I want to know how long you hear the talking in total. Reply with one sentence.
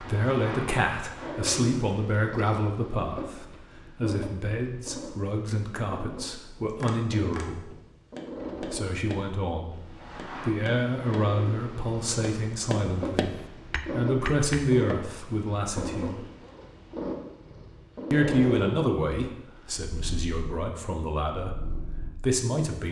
The talking can be heard for 20 seconds in total.